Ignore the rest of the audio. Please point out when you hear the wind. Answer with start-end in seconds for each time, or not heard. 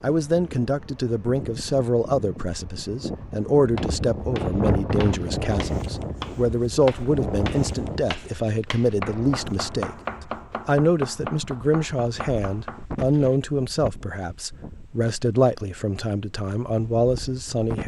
0.0-17.8.